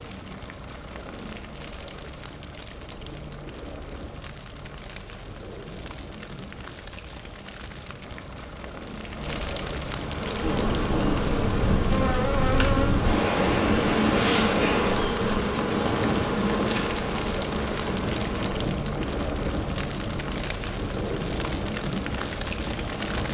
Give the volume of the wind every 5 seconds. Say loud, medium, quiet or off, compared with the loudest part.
off, off, loud, medium, medium.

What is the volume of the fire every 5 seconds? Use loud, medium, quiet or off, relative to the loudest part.
medium, medium, loud, loud, loud.